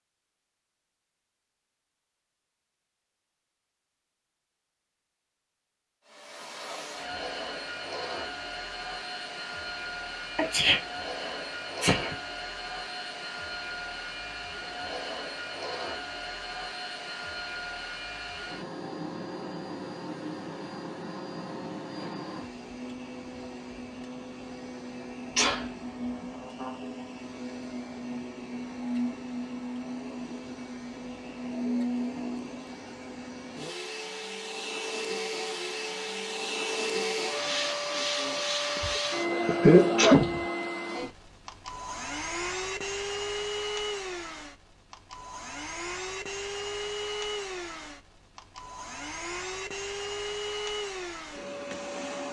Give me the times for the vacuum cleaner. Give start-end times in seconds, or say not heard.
6.0-52.2.